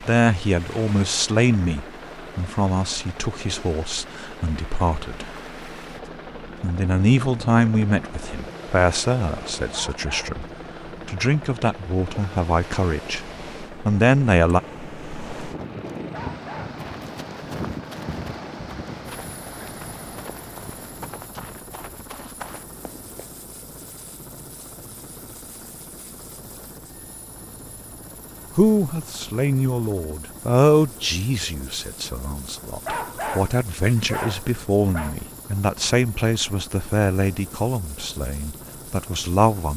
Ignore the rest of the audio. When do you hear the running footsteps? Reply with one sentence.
You can hear the running footsteps from 16.7 to 23.2 s.